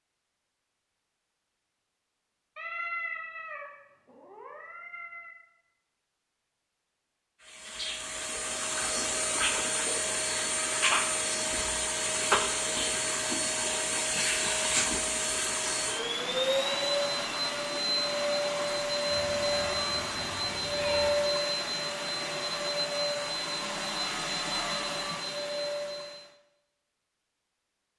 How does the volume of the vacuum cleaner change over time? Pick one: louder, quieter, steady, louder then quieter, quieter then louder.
steady.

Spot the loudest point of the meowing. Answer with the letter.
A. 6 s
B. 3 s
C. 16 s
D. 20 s
B.